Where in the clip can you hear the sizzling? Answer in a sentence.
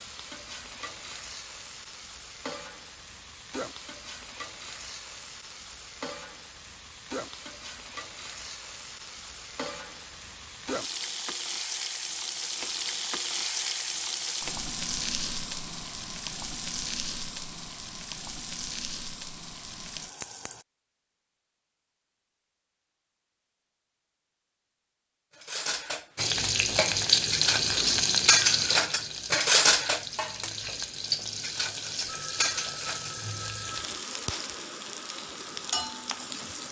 The sizzling can be heard from 0.0 to 20.6 s and from 26.1 to 36.6 s.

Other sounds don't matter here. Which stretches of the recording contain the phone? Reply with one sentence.
You can hear the phone from 32.0 to 33.9 s.